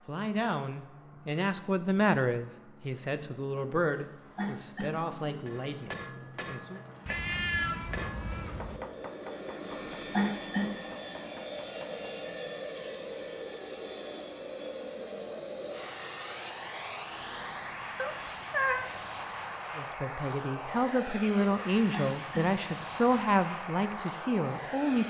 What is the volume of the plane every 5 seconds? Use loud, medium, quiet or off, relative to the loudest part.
quiet, medium, loud, loud, loud.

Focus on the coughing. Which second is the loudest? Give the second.
10 s.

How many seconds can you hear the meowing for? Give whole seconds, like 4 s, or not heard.
3 s.